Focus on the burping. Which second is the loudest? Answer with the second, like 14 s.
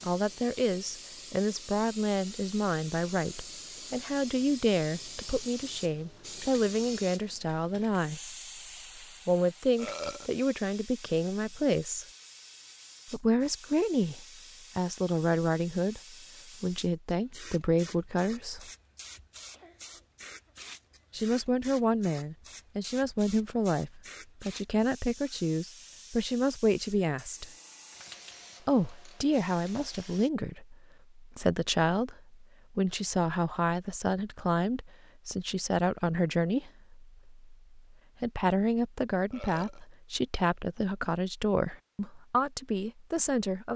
10 s.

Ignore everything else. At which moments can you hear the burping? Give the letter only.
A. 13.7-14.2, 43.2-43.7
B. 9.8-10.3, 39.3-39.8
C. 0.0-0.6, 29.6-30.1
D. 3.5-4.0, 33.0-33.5
B.